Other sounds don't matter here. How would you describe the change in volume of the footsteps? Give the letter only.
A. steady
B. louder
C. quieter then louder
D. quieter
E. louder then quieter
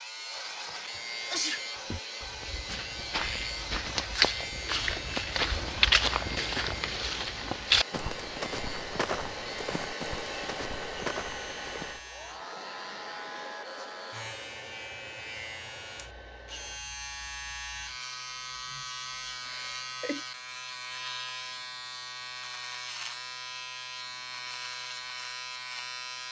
E.